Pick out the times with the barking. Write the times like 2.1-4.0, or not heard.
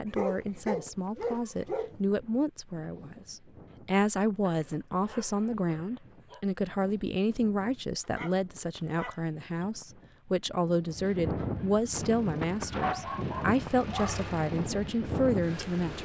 0.1-1.9, 4.4-6.5, 8.0-9.7, 12.7-14.2.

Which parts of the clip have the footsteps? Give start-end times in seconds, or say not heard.
not heard.